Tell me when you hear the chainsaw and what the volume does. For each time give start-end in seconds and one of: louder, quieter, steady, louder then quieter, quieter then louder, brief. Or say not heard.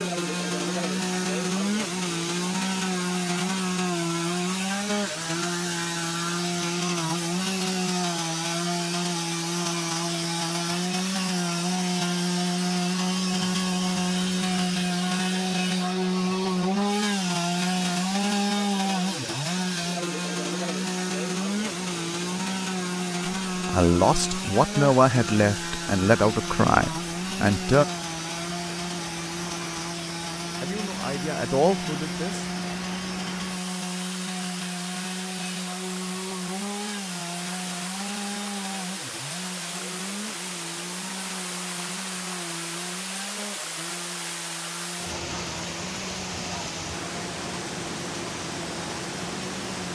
0.0-49.8 quieter.